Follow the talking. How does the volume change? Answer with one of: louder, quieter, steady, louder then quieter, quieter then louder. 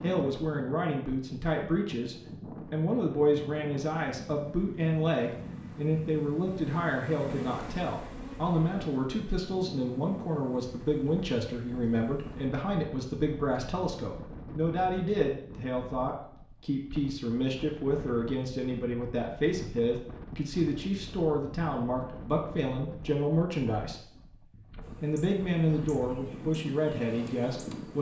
steady.